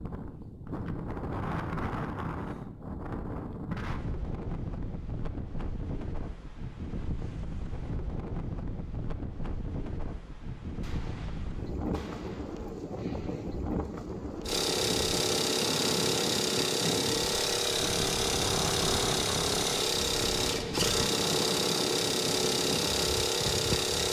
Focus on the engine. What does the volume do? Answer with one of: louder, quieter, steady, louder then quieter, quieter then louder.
steady.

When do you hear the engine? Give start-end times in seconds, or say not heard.
14.4-24.0.